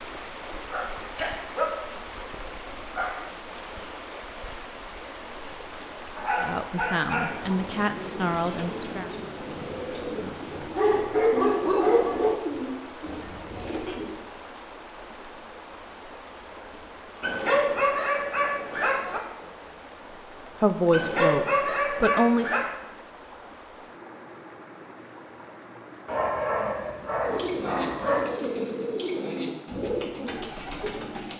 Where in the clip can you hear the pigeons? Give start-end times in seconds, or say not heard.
7.3-14.1, 27.2-31.3.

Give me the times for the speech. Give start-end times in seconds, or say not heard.
6.4-9.1, 20.6-22.4.